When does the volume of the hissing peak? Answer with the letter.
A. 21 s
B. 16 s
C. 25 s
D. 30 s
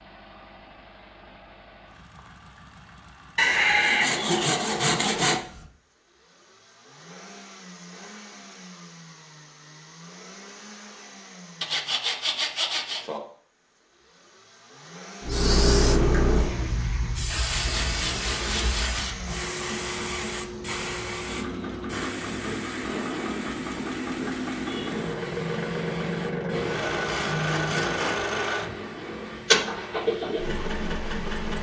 B.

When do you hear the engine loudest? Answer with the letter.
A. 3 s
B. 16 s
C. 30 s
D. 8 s
C.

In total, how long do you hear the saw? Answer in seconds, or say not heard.
7 s.